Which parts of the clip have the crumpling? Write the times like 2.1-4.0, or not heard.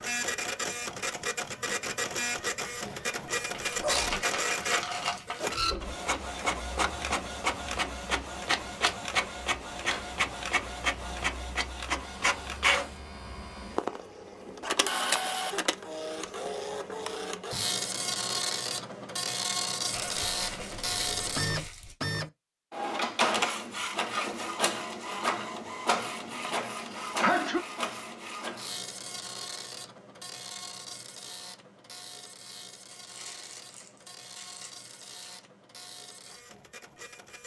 3.4-5.5, 19.9-21.9, 32.9-35.5.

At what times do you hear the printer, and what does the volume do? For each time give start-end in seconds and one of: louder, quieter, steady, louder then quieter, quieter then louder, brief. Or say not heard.
0.0-37.4 quieter.